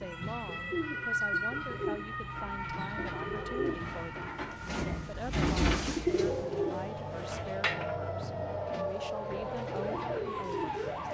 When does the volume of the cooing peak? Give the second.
6 s.